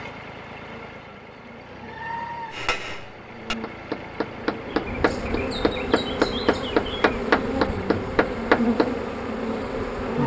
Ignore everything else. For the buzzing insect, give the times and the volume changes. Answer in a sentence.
The buzzing insect can be heard from 0.0 to 10.2 s, getting louder.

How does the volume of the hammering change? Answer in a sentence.
The loudness of the hammering goes up.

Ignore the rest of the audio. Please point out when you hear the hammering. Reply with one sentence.
You can hear the hammering from 2.5 to 9.1 s.